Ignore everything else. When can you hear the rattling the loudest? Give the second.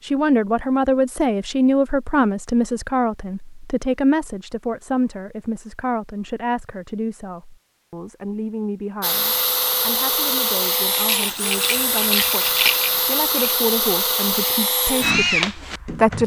13 s.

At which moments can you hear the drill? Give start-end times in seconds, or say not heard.
9.0-16.2.